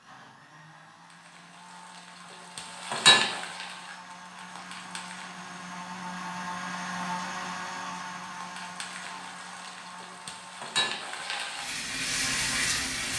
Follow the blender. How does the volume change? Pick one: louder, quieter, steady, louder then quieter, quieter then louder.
louder then quieter.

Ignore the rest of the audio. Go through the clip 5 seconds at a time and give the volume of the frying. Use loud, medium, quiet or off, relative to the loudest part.
loud, quiet, loud.